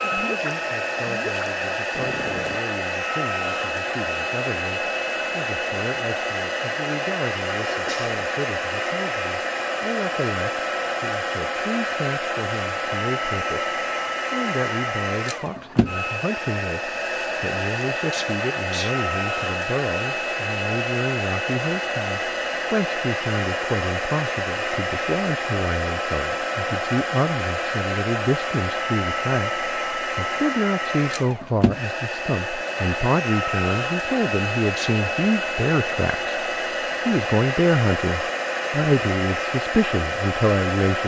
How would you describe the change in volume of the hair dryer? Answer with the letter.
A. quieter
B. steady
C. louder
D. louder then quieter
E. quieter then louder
B.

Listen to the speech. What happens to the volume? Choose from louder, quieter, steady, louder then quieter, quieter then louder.
louder.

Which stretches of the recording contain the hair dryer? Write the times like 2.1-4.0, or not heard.
0.0-41.0.